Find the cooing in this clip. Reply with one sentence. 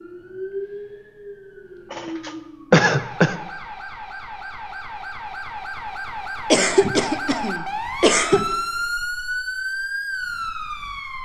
You can't hear the cooing here.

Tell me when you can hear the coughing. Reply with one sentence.
You can hear the coughing from 1.9 to 3.4 s and from 6.5 to 8.4 s.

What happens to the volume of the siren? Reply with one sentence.
The loudness of the siren goes up.